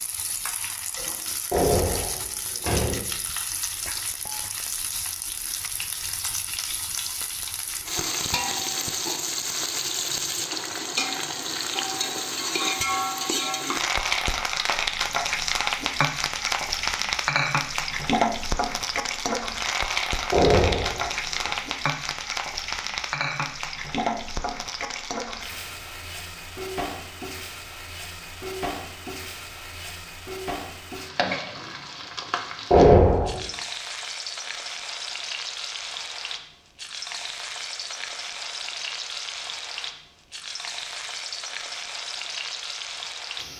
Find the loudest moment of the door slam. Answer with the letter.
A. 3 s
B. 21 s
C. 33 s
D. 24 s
C.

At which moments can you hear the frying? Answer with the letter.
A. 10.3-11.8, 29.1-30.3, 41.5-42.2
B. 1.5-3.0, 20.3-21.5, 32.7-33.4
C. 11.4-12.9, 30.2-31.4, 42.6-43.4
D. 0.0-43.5
D.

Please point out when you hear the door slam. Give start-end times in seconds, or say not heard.
1.5-3.0, 20.3-21.5, 32.7-33.4.